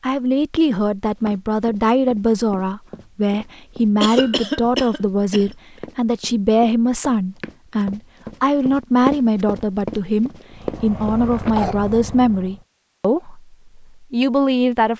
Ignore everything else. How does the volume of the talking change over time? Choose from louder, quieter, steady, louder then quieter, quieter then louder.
steady.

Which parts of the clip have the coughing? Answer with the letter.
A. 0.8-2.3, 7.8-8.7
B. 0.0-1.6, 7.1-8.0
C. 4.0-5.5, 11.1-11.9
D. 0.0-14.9
C.